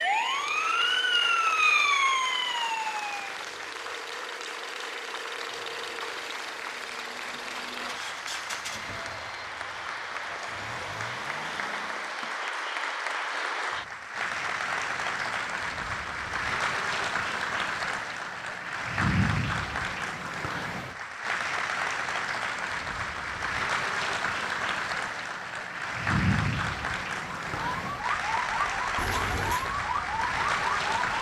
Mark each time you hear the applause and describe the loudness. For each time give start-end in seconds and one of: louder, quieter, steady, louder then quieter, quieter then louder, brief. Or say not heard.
0.0-31.1 louder.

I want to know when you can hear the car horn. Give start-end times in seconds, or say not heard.
28.9-29.8.